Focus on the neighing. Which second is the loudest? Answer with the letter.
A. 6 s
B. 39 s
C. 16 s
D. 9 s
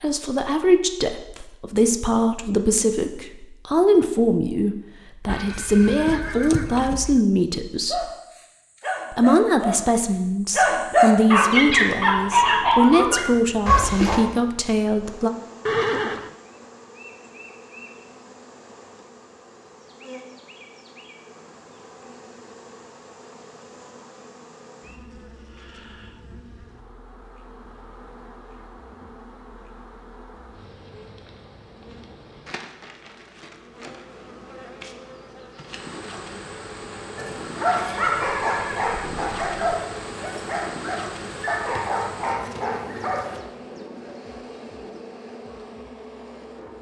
C.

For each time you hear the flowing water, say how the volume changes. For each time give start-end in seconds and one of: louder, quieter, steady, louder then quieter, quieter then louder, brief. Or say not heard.
not heard.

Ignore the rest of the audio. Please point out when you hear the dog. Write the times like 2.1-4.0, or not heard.
7.8-14.2, 37.1-43.4.